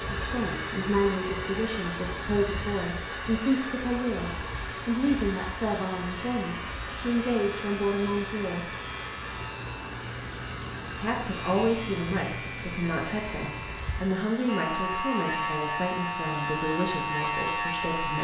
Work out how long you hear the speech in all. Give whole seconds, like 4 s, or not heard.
16 s.